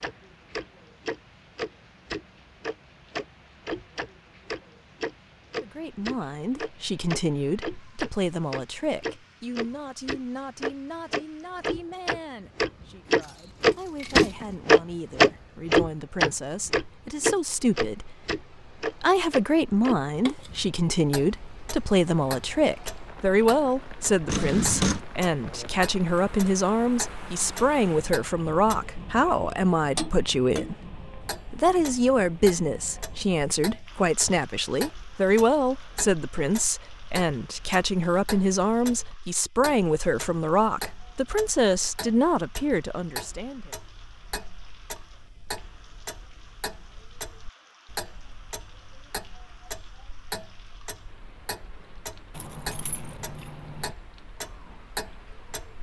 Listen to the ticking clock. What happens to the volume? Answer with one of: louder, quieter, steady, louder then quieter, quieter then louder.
quieter.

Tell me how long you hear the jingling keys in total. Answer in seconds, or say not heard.
4 s.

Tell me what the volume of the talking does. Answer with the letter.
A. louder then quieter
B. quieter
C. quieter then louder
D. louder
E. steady
D.